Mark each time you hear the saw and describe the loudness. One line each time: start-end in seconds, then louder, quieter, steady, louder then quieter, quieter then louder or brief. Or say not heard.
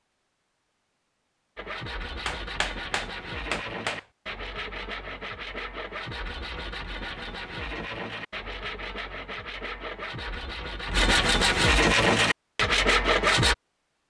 1.6-13.6 louder.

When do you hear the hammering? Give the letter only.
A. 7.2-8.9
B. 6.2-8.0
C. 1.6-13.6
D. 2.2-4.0
D.